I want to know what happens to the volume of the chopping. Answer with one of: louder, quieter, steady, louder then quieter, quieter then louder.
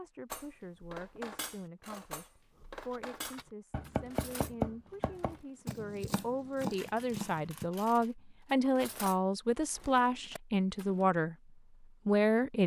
louder then quieter.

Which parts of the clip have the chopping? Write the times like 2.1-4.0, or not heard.
2.6-8.1.